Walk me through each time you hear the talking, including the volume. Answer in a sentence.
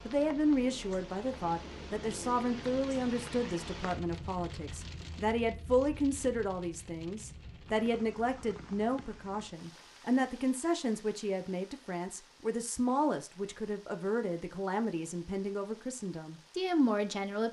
The talking can be heard from 0.1 to 17.4 s, at a steady volume.